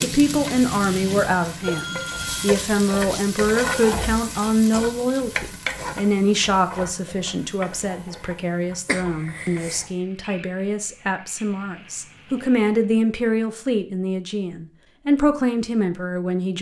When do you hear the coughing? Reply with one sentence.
You can hear the coughing from 8.8 to 9.9 s.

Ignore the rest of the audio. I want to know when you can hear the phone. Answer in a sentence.
You can hear the phone from 1.6 to 2.5 s.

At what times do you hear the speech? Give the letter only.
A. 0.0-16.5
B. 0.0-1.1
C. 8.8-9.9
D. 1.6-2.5
A.